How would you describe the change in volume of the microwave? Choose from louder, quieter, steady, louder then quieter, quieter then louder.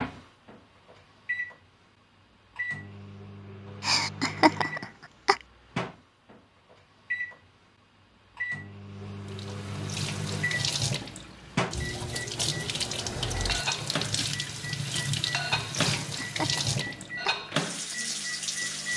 louder.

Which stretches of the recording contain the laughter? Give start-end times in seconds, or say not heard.
3.8-5.4, 15.8-17.4.